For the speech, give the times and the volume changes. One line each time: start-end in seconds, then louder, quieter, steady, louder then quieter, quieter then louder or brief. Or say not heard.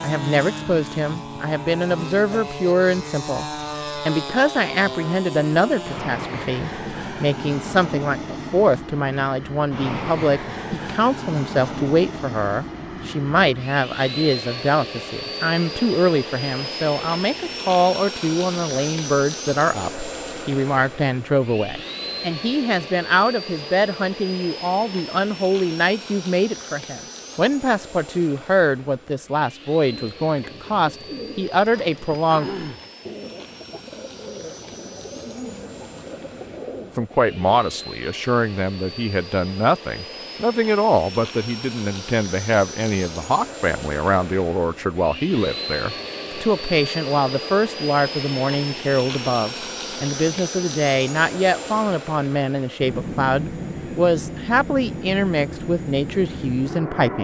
0.0-32.5 steady
37.0-57.1 steady.